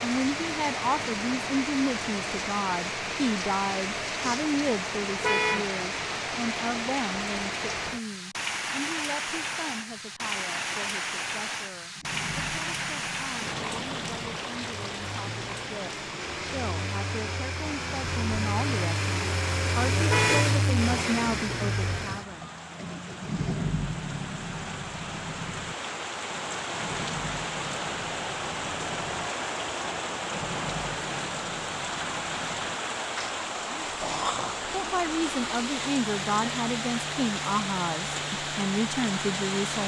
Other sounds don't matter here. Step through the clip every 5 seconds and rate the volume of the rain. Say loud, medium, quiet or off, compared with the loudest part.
loud, loud, loud, medium, medium, loud, loud, loud.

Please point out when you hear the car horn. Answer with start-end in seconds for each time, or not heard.
5.2-5.7, 20.1-20.6.